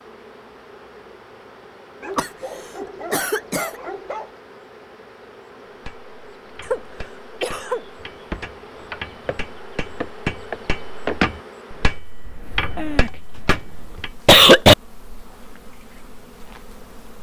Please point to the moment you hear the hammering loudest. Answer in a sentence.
The loudest moment of the hammering is at 11 seconds.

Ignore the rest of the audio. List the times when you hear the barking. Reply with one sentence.
You can hear the barking from 2.0 to 4.3 s.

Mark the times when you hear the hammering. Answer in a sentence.
You can hear the hammering from 5.8 to 14.1 s.